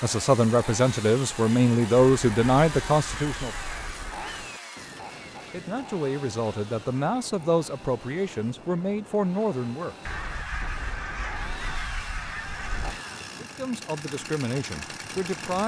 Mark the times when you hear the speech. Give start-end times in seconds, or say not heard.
0.0-3.5, 5.5-9.9, 13.4-15.6.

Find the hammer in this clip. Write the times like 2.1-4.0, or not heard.
not heard.